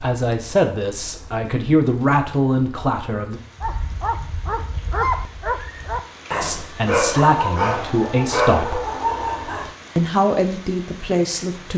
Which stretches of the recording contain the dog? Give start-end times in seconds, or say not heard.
3.6-9.8.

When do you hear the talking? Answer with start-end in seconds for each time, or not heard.
0.0-3.4, 6.4-8.8, 9.9-11.7.